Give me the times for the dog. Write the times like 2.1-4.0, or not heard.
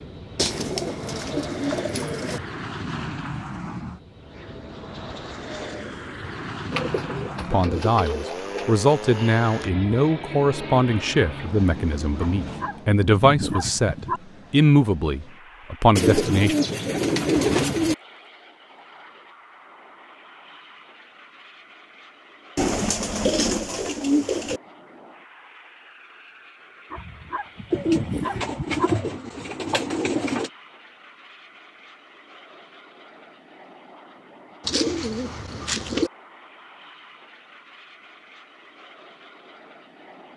12.4-14.2, 26.9-28.9.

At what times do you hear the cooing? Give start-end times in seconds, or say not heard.
0.3-2.4, 6.7-8.8, 15.9-17.9, 22.6-24.6, 27.7-30.5, 34.6-36.1.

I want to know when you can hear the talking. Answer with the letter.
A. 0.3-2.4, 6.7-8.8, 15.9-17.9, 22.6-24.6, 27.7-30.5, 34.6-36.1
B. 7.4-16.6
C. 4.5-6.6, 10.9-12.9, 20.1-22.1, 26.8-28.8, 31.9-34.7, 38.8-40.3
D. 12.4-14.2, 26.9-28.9
B.